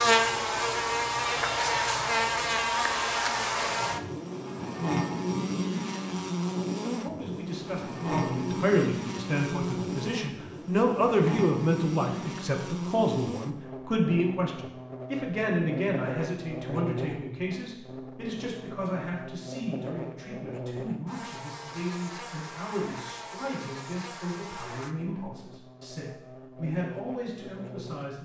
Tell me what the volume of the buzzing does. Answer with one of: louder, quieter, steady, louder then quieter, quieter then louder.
quieter.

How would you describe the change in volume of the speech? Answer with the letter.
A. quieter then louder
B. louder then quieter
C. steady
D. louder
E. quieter
E.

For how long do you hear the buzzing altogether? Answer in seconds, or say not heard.
28 s.